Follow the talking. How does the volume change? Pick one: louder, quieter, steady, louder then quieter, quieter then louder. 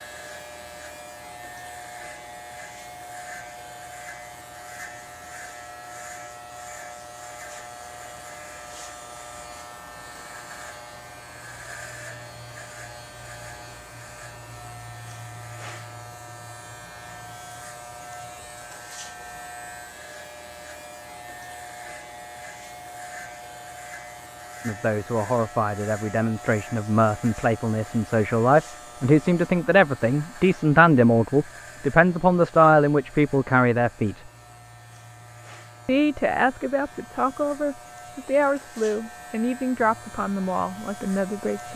louder then quieter.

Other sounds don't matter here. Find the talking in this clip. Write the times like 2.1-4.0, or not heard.
24.6-34.2, 35.9-41.7.